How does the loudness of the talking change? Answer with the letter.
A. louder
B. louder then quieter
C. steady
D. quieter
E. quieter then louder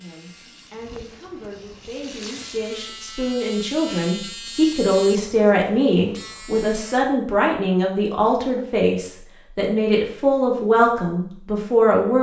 A.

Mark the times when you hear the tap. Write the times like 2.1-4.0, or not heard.
0.0-2.9.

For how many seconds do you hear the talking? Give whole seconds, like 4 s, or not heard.
12 s.